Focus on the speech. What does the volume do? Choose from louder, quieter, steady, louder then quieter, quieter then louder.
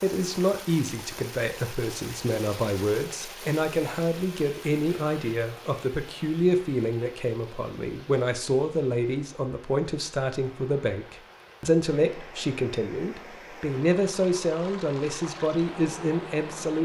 steady.